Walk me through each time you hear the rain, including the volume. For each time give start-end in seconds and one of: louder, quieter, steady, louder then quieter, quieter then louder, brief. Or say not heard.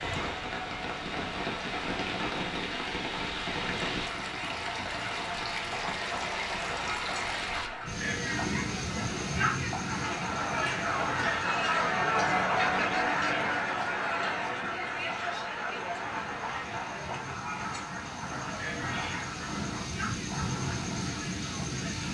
0.0-22.0 quieter then louder.